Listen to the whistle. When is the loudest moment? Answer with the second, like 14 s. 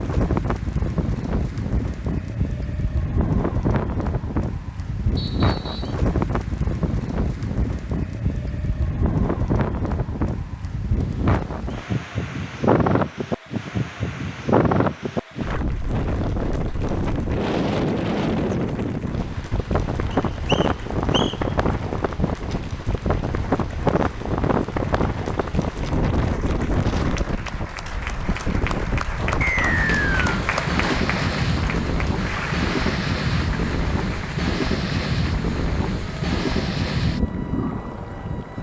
30 s.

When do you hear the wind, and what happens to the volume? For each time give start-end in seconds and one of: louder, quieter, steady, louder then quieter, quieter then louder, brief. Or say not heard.
0.0-38.5 steady.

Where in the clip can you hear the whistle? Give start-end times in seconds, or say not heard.
5.2-6.0, 20.1-21.4, 29.4-30.3.